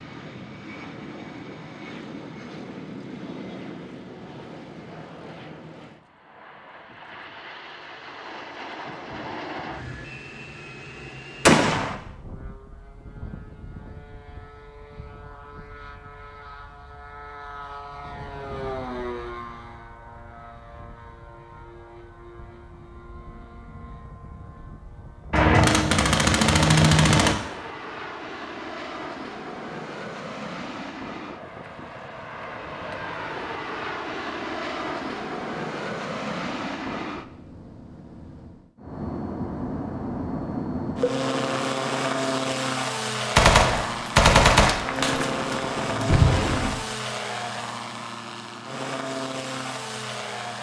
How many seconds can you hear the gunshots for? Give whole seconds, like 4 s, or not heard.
6 s.